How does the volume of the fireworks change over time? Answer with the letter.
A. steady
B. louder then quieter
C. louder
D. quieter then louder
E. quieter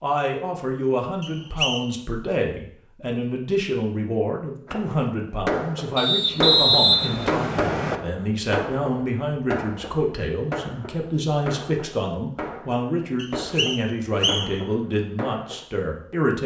E.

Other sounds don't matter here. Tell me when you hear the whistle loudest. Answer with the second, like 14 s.
7 s.